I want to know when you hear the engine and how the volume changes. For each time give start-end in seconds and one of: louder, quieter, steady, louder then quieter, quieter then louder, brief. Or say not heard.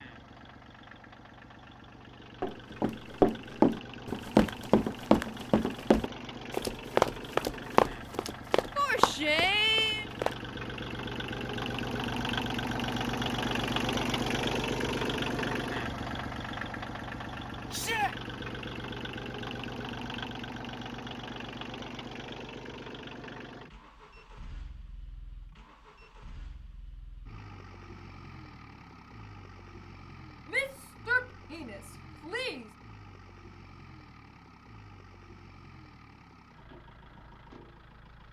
0.0-38.2 louder then quieter.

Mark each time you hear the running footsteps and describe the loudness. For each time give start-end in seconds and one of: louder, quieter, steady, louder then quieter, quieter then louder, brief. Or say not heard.
2.4-10.3 quieter.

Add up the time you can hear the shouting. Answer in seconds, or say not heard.
4 s.